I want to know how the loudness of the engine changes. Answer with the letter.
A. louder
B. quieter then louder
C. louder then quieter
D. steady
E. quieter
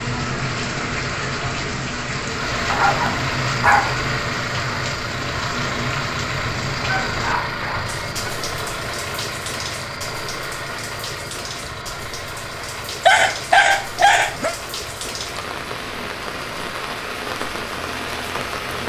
E.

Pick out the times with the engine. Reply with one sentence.
The engine can be heard from 2.2 to 18.8 s.